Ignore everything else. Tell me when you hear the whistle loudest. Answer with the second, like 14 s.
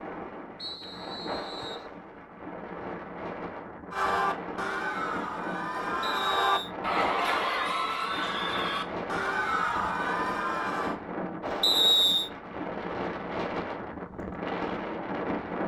12 s.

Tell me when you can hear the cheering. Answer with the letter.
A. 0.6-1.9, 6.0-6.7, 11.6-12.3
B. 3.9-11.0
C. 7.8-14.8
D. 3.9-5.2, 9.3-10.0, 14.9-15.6
B.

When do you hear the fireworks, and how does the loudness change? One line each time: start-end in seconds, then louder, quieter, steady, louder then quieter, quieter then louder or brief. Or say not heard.
not heard.